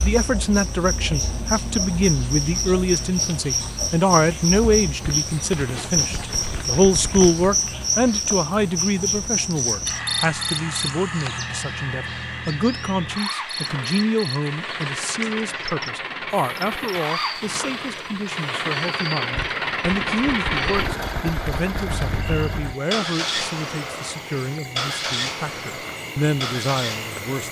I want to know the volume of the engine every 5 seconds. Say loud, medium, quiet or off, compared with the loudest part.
quiet, quiet, medium, loud, loud, loud.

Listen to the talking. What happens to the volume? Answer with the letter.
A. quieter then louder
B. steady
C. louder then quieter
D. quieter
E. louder
D.